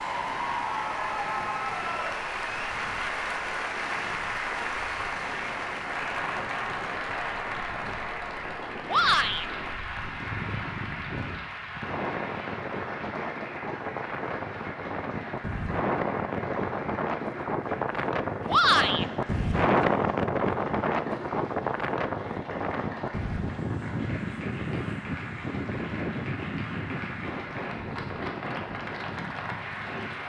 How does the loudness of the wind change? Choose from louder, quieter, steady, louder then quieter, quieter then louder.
louder then quieter.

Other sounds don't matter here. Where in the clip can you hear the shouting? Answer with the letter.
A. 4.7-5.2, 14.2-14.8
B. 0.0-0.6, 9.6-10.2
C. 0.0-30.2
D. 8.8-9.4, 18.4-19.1
D.